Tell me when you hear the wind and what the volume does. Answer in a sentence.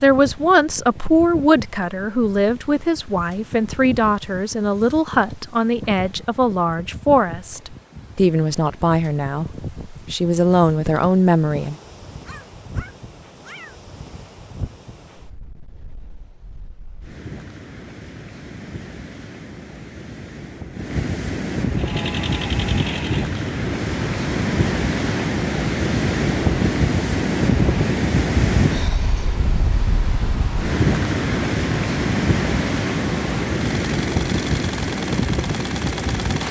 The wind can be heard from 0.0 to 36.4 s, getting louder.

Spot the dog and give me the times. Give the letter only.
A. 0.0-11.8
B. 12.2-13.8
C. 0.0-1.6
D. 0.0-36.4
B.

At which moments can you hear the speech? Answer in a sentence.
The speech can be heard from 0.0 to 11.8 s.